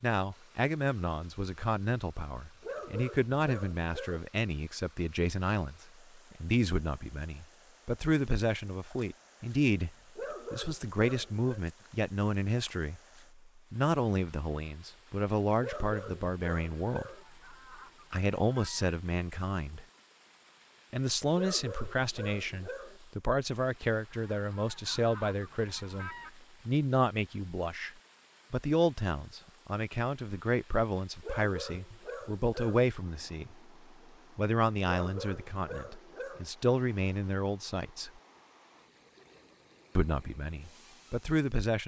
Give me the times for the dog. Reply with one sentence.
You can hear the dog from 2.6 to 4.2 s, from 10.2 to 11.7 s, from 15.6 to 17.2 s, from 21.3 to 23.0 s, from 31.2 to 32.9 s and from 34.9 to 36.5 s.